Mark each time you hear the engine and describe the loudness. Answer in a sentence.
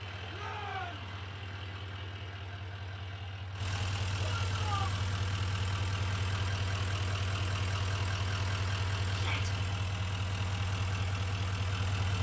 The engine can be heard from 0.0 to 12.1 s, getting louder.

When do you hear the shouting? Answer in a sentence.
You can hear the shouting from 0.3 to 1.1 s, from 4.2 to 5.0 s and from 9.1 to 9.5 s.